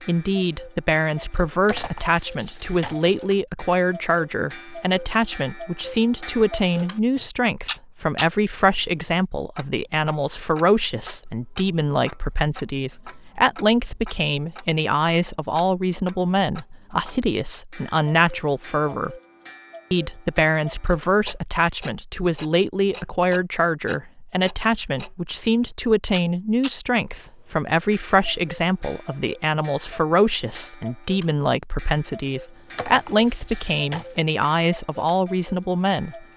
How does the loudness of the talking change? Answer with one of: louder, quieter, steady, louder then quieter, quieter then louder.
steady.